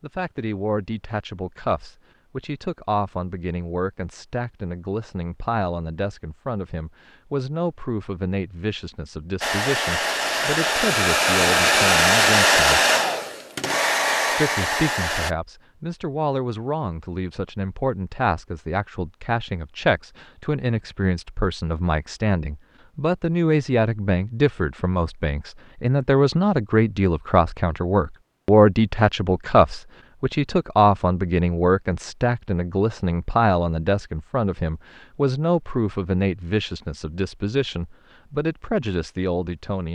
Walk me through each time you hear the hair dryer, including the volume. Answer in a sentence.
You can hear the hair dryer from 9.4 to 15.3 s, getting louder then quieter.